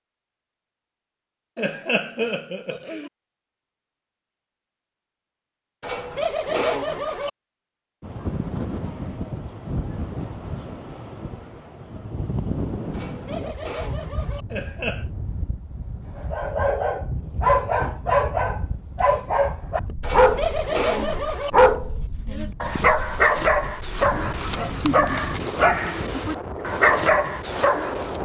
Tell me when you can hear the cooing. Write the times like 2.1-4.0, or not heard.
5.8-7.3, 12.9-14.4, 20.0-21.5.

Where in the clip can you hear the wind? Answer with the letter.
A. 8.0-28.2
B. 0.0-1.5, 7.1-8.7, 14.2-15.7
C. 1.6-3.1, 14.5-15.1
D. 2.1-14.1
A.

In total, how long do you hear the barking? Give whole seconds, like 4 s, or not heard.
12 s.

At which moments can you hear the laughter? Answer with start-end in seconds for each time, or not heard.
1.6-3.1, 14.5-15.1.